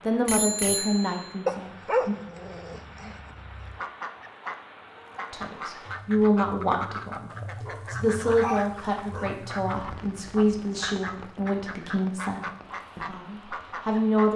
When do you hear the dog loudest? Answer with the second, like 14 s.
2 s.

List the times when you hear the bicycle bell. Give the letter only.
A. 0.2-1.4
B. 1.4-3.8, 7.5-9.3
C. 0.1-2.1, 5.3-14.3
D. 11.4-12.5
A.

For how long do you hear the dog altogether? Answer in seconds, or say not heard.
4 s.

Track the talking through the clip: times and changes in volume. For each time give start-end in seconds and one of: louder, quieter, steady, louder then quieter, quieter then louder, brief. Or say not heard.
0.1-2.1 brief
5.3-14.3 quieter.